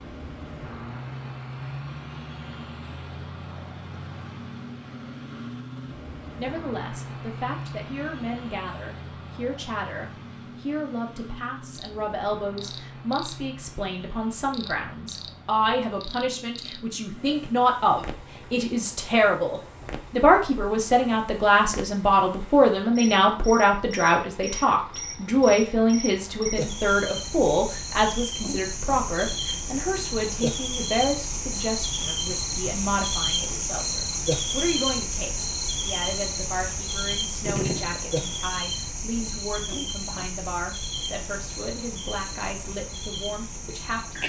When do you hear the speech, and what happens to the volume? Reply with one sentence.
You can hear the speech from 6.3 to 44.2 s, getting louder then quieter.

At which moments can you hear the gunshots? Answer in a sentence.
The gunshots can be heard from 37.5 to 38.0 s.